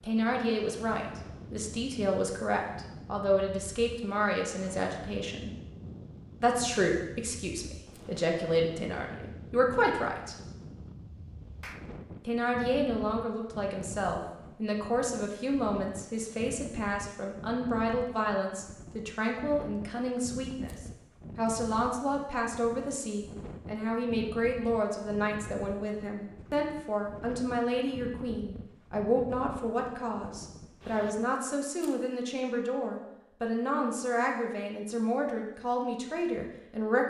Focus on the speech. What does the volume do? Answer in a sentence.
The loudness of the speech stays about the same.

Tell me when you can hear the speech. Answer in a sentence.
The speech can be heard from 0.0 to 5.5 s, from 6.4 to 10.3 s and from 12.2 to 37.0 s.